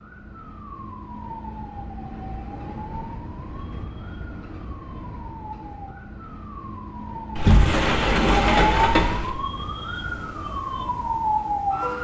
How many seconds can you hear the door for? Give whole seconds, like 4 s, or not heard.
2 s.